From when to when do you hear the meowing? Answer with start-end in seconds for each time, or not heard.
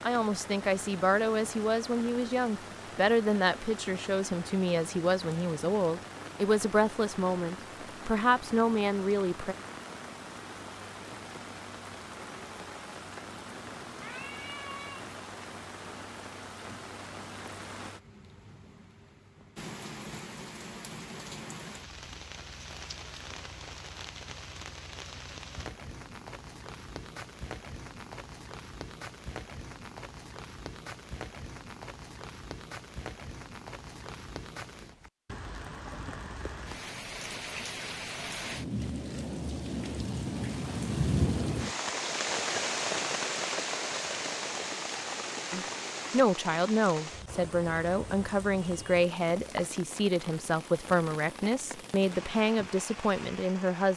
13.9-15.2.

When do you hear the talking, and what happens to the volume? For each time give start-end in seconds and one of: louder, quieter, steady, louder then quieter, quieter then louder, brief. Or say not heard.
0.0-9.6 steady
45.5-53.9 steady.